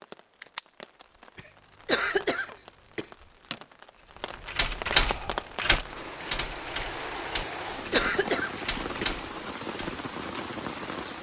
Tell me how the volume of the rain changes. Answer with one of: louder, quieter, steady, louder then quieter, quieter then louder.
louder.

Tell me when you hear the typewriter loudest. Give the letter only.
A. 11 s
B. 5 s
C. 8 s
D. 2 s
B.